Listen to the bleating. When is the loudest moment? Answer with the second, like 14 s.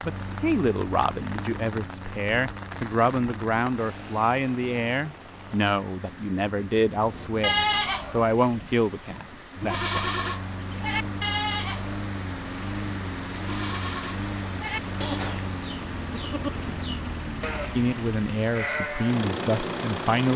8 s.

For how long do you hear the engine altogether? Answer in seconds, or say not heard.
20 s.